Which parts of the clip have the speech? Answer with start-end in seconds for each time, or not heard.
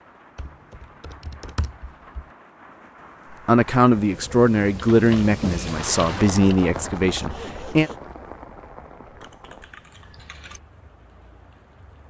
3.5-7.9.